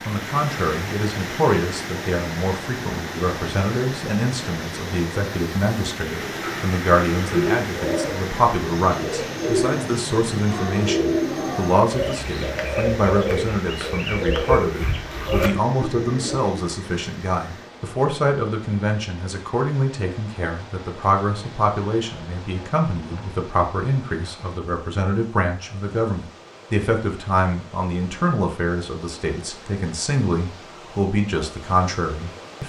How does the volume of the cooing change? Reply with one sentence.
The volume of the cooing stays about the same.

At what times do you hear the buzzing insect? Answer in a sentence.
You can't hear the buzzing insect here.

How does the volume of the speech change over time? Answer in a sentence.
The volume of the speech stays about the same.